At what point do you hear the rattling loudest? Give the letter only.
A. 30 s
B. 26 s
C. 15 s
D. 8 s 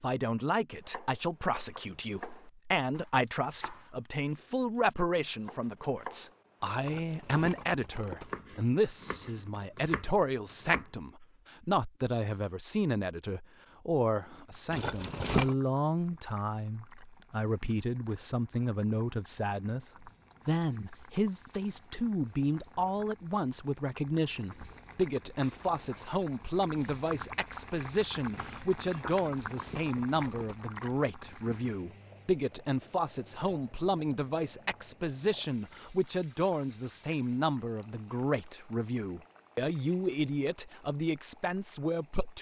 C.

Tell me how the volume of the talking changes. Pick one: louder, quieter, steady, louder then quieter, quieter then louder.
steady.